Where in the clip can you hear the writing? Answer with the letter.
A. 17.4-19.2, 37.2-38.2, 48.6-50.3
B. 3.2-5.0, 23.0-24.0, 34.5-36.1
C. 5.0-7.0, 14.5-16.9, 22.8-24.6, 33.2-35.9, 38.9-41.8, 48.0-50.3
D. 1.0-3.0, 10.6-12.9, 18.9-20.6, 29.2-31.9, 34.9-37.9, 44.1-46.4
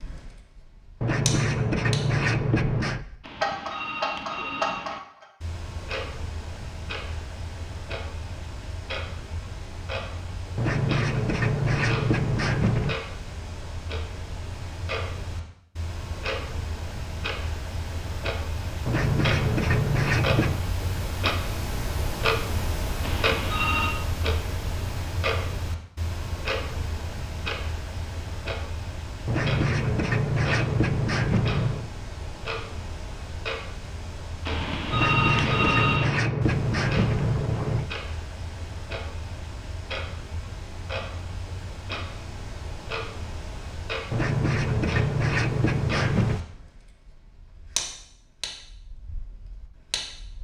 D.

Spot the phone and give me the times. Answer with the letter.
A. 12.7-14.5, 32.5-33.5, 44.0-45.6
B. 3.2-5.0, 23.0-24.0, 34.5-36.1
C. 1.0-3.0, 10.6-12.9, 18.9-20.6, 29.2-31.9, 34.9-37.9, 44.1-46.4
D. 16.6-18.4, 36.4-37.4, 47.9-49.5
B.